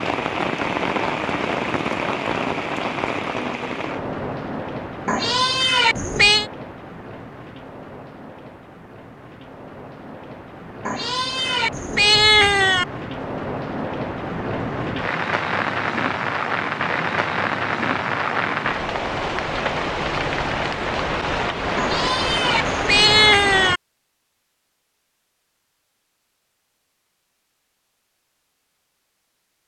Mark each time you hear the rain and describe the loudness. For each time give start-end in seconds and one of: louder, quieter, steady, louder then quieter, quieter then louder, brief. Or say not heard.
0.0-23.8 quieter then louder.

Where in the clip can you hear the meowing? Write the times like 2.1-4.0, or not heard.
5.0-6.5, 10.8-12.8, 21.8-23.8.